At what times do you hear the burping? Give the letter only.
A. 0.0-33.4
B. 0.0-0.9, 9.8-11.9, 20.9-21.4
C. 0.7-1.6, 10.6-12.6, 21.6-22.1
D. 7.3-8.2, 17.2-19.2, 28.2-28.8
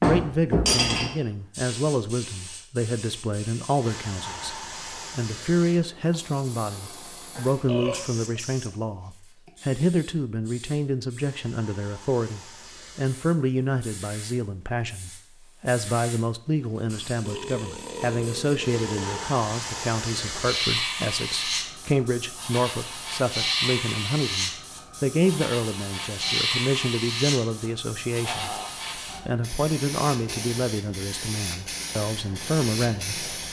D.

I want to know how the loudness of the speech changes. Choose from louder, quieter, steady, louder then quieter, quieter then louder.
steady.